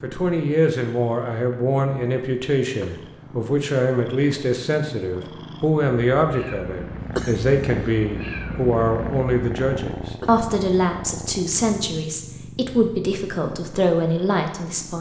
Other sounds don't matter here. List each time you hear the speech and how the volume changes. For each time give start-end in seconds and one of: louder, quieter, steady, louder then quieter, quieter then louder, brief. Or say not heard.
0.0-14.9 steady.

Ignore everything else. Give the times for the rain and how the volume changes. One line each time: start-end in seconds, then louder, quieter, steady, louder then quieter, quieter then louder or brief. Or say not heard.
not heard.